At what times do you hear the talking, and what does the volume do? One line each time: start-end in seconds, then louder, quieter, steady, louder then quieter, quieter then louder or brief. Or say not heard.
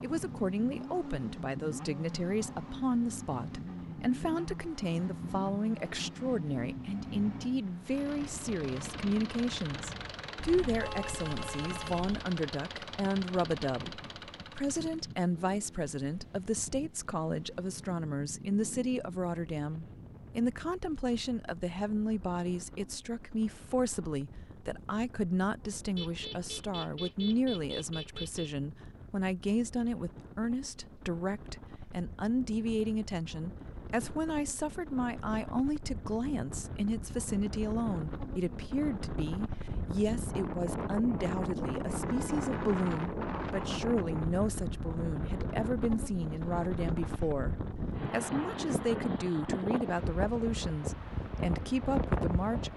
0.0-52.7 steady.